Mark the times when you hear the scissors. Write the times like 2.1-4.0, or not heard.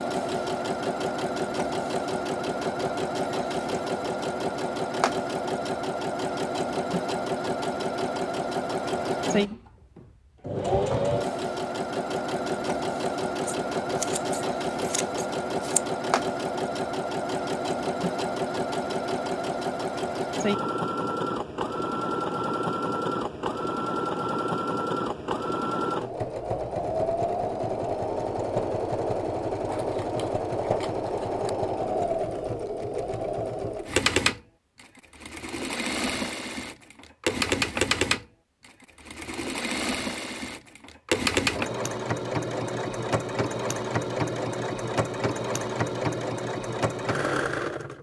13.4-15.8, 29.6-31.4.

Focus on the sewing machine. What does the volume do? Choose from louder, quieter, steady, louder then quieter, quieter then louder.
steady.